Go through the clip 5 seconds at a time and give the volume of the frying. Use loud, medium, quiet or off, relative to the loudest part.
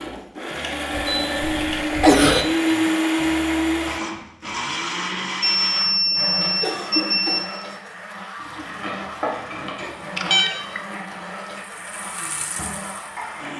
off, loud, medium.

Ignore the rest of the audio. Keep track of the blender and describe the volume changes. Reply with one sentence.
The loudness of the blender goes down.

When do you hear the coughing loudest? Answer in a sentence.
The volume of the coughing peaks at 2 seconds.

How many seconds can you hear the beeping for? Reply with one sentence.
You can hear the beeping for 5 seconds altogether.